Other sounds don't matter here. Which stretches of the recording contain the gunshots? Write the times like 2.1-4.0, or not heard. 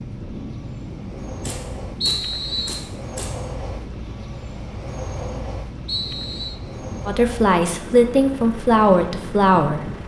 1.4-3.4.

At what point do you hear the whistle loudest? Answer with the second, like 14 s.
2 s.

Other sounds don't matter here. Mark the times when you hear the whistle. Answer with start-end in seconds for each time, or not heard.
2.0-2.9, 5.8-6.6.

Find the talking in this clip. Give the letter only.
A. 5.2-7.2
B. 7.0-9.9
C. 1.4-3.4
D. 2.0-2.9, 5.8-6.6
B.